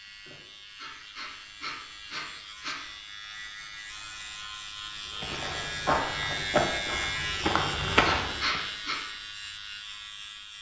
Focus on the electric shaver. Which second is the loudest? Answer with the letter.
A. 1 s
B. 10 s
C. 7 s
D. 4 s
C.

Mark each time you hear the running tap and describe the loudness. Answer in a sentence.
You can't hear the running tap here.